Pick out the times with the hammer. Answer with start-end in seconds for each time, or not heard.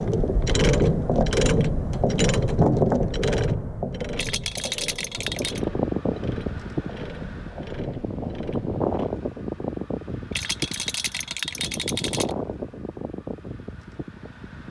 not heard.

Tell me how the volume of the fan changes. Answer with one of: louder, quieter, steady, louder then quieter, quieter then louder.
quieter.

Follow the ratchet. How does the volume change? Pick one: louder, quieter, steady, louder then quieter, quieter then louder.
quieter.